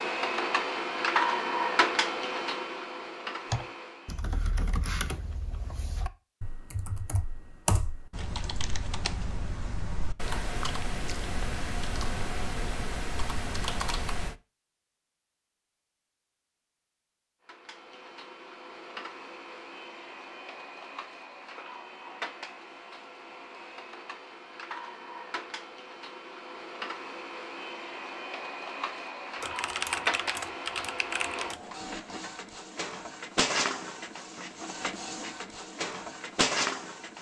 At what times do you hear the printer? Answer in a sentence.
You can hear the printer from 0.0 to 4.2 s and from 17.4 to 37.1 s.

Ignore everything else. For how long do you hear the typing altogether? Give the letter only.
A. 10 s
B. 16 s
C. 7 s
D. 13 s
D.